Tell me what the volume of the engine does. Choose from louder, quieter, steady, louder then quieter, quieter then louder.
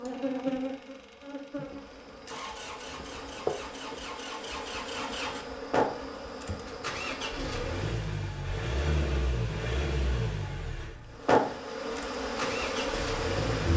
louder.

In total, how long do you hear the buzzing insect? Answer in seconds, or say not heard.
11 s.